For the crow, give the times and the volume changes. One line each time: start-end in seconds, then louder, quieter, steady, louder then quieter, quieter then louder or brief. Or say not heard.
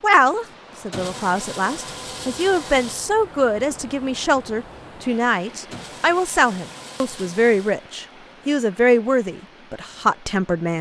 not heard.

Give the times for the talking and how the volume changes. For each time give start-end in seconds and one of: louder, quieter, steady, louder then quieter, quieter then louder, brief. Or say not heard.
0.0-10.7 louder.